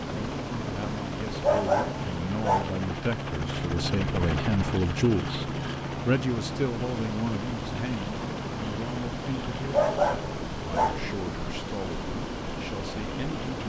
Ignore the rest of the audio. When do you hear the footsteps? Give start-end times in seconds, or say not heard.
not heard.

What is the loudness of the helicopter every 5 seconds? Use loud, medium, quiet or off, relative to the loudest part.
loud, loud, medium.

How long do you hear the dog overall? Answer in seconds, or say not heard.
3 s.